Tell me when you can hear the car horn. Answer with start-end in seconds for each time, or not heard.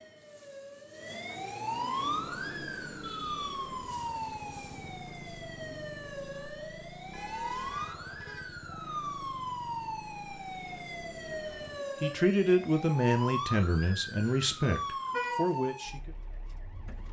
3.0-3.6, 7.1-8.8, 14.2-15.5.